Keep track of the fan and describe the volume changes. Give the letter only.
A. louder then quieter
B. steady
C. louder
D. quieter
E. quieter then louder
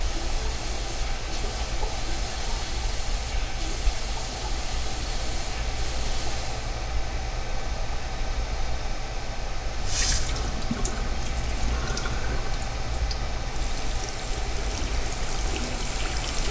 B.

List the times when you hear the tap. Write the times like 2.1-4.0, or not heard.
0.0-6.8, 9.7-16.4.